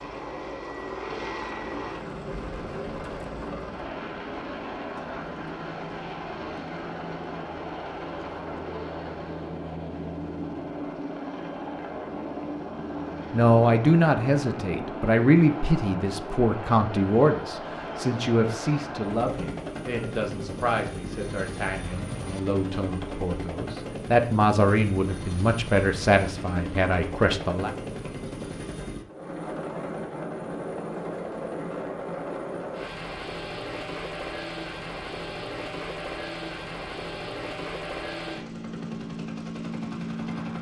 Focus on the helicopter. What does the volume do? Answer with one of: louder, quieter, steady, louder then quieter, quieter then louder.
steady.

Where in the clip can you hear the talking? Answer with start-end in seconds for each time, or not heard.
13.3-27.7.